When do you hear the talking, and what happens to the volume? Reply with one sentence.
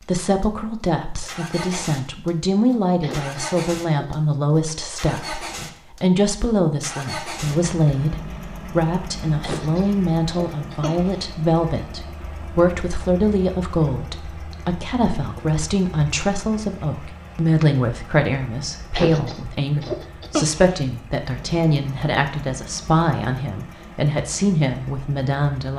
You can hear the talking from 0.1 to 25.7 s, at a steady volume.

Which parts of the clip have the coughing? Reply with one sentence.
The coughing can be heard from 3.0 to 4.2 s, from 9.4 to 11.2 s and from 18.9 to 20.8 s.